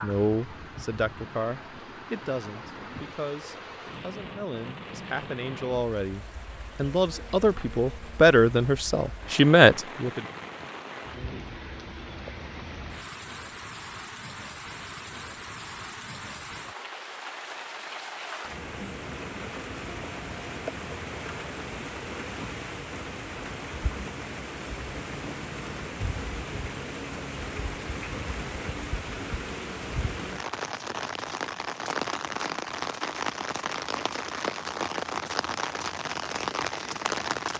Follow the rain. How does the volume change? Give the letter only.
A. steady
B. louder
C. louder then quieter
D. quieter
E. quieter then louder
B.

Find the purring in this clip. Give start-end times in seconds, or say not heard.
not heard.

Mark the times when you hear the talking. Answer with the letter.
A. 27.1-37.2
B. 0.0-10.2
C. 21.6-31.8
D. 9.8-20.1
B.